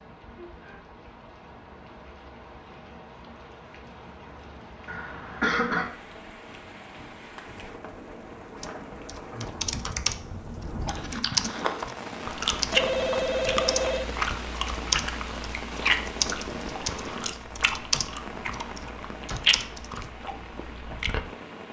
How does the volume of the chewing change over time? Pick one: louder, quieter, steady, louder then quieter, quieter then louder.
quieter then louder.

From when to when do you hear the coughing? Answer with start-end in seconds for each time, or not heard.
4.8-5.8.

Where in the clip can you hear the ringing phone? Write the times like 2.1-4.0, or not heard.
12.7-14.2.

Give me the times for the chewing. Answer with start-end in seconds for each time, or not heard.
10.8-21.2.